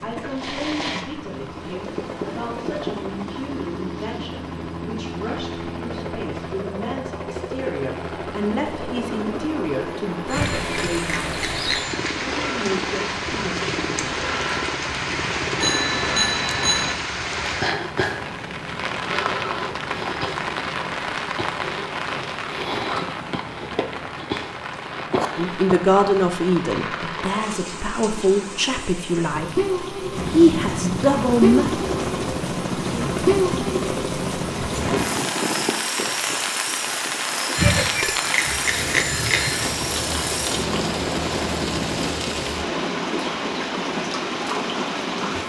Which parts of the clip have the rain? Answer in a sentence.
You can hear the rain from 10.2 to 45.4 s.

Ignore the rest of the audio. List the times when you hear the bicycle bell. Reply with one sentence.
The bicycle bell can be heard from 10.3 to 12.1 s, from 15.6 to 16.9 s and from 37.5 to 39.6 s.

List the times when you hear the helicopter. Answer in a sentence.
The helicopter can be heard from 0.0 to 21.0 s and from 30.1 to 45.4 s.